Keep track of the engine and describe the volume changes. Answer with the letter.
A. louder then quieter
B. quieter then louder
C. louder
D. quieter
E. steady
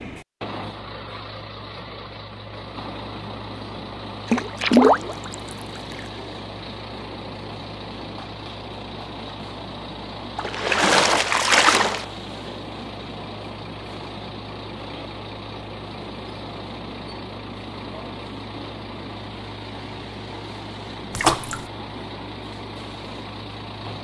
E.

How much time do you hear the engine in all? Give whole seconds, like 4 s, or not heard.
24 s.